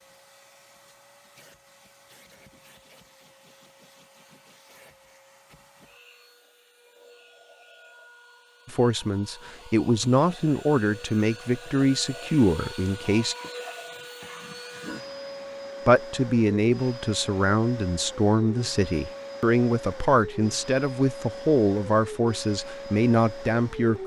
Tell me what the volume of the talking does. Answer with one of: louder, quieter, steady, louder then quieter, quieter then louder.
steady.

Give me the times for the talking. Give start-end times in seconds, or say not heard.
8.7-13.3, 15.8-24.0.